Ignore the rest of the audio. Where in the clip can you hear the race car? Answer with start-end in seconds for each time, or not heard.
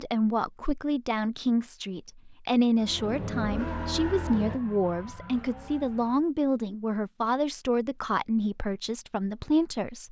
2.8-6.3.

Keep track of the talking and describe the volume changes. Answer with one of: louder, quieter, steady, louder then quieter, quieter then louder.
steady.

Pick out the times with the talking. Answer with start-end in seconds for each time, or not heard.
0.0-10.0.